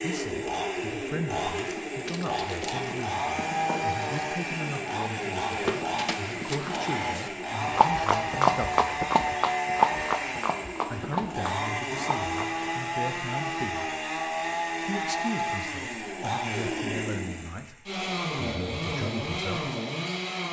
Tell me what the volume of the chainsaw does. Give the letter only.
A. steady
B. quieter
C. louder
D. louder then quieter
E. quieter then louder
A.